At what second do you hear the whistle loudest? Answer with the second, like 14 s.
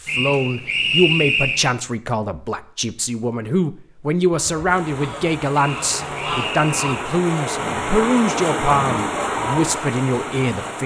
1 s.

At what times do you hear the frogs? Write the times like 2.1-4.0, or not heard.
not heard.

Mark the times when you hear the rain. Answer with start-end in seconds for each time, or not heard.
4.7-10.8.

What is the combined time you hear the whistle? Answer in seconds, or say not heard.
3 s.